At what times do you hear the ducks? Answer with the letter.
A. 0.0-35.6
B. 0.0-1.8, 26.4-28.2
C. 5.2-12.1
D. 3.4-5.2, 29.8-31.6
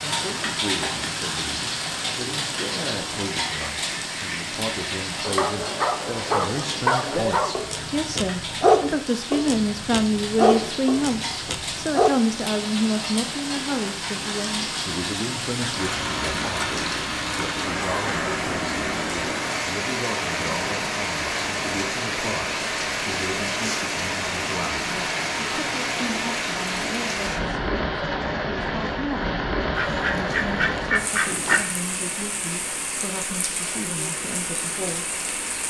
D.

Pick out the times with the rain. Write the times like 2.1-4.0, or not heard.
0.0-35.6.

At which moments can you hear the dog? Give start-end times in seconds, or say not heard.
5.2-12.1.